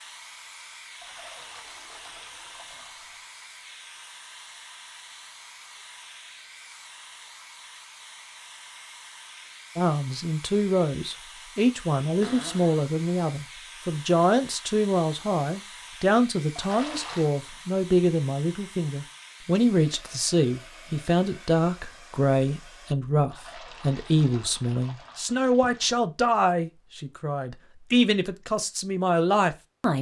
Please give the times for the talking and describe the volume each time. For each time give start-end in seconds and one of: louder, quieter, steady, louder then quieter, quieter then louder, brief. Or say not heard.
9.8-29.9 steady.